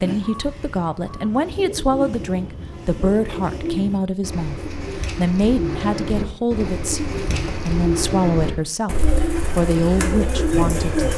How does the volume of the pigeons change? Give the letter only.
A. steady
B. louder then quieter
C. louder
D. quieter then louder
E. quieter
C.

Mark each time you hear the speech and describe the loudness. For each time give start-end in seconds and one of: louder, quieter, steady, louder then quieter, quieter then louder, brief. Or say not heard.
0.0-11.1 steady.